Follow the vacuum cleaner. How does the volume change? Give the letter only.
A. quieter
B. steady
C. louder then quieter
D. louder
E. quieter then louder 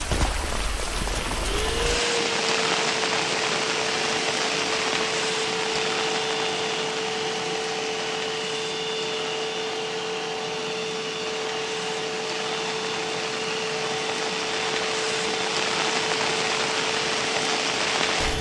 B.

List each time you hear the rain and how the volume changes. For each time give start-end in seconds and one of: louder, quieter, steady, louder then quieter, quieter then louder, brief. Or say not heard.
0.0-18.3 quieter then louder.